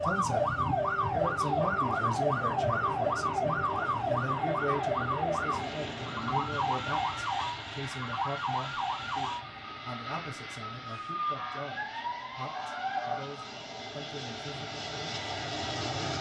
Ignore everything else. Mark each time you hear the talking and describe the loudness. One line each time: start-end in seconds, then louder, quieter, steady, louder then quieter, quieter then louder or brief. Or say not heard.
0.0-16.0 quieter.